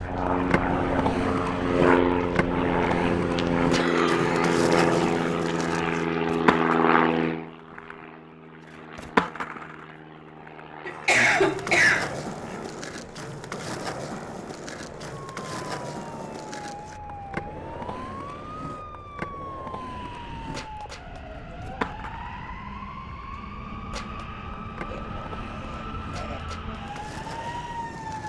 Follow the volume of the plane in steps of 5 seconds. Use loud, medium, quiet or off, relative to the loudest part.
loud, loud, quiet, quiet, quiet, quiet.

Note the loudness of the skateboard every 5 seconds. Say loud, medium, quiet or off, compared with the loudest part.
loud, loud, medium, medium, medium, quiet.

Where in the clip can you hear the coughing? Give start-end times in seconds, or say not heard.
3.7-4.5, 10.8-12.2, 24.9-26.4.